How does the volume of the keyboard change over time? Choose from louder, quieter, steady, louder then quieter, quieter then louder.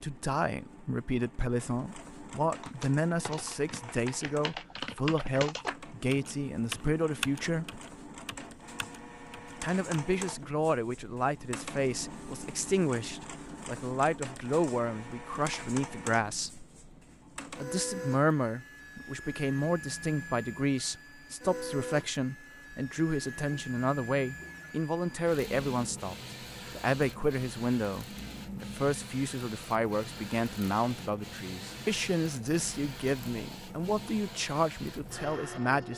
louder then quieter.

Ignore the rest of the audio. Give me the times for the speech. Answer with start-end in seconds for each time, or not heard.
0.0-7.8, 9.6-16.6, 17.6-35.9.